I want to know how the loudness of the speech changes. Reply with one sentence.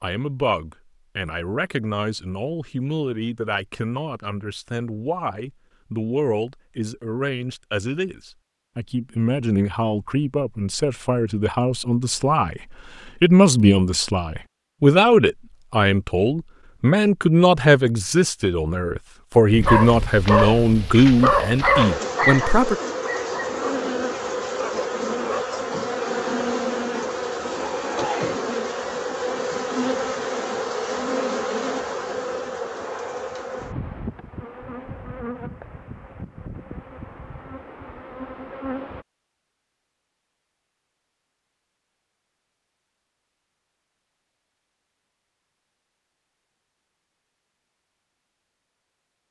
The loudness of the speech goes up.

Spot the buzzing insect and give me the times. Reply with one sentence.
You can hear the buzzing insect from 19.5 to 39.0 s.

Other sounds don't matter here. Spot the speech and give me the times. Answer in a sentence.
The speech can be heard from 0.0 to 22.8 s.